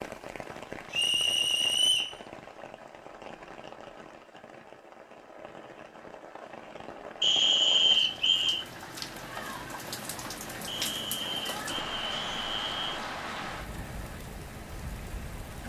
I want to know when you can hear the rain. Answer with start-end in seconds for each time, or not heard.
0.0-15.6.